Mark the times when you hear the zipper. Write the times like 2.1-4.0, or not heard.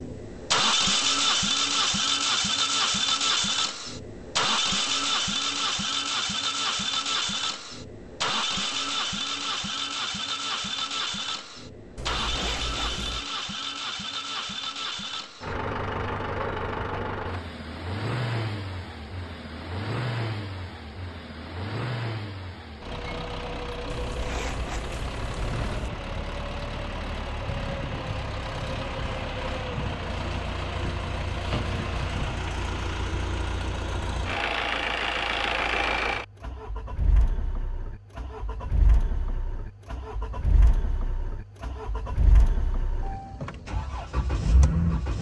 11.9-13.2, 23.9-25.9.